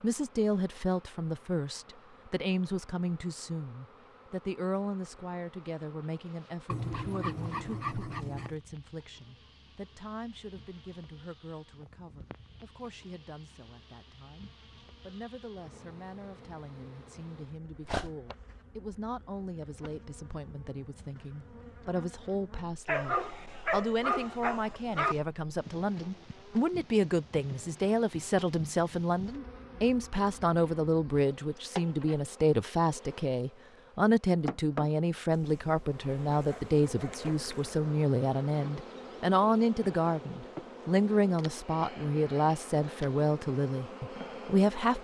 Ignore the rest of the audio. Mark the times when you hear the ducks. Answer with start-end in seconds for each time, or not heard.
not heard.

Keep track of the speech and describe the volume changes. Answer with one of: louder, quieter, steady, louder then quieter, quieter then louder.
quieter then louder.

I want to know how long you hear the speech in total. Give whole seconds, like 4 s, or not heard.
45 s.